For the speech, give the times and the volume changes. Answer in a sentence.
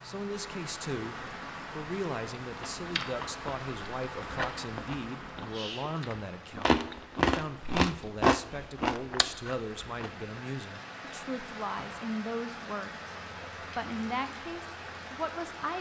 The speech can be heard from 0.0 to 15.7 s, at a steady volume.